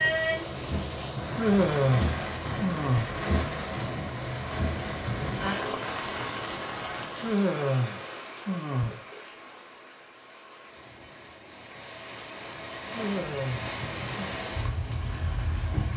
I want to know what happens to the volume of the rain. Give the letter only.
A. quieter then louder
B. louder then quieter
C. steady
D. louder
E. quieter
A.